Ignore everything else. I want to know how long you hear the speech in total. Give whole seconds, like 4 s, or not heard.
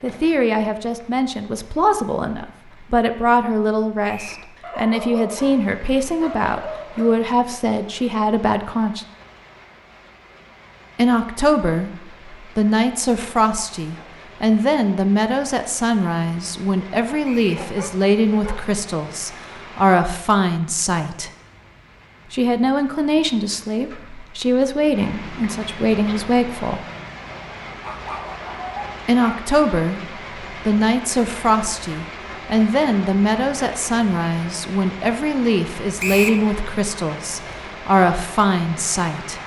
33 s.